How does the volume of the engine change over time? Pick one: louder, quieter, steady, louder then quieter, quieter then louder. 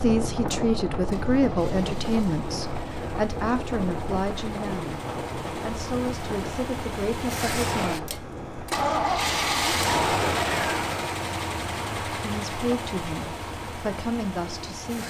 louder then quieter.